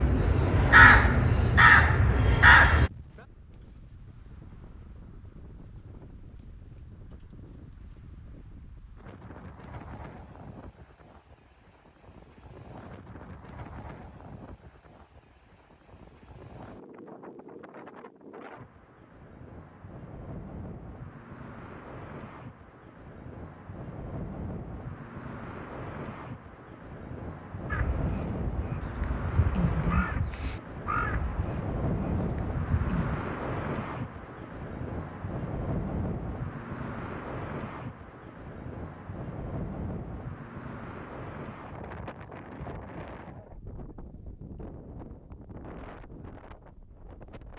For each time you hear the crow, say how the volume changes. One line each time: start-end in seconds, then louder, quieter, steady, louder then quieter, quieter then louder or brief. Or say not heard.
0.0-2.9 brief
27.7-33.2 louder then quieter.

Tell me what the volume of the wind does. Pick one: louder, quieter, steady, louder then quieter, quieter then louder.
louder then quieter.